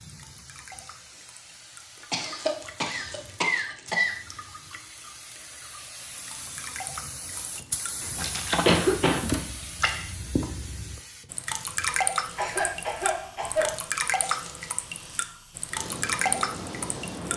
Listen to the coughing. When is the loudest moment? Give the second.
9 s.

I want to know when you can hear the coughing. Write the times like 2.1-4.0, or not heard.
2.1-4.1, 8.6-9.3, 12.3-13.8.